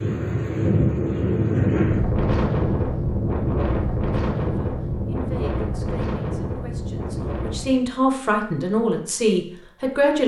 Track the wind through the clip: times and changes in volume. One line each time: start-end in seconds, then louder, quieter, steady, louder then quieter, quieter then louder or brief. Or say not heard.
0.0-7.8 quieter.